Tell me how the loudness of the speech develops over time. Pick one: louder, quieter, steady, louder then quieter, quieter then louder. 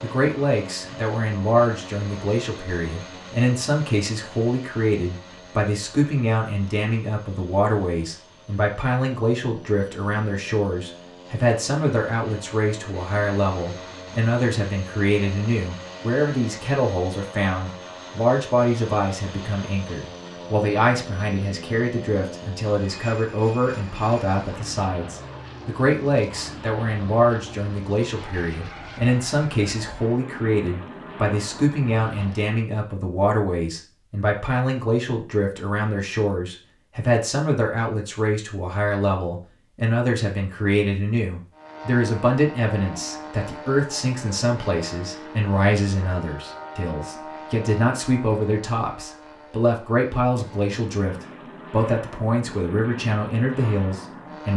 steady.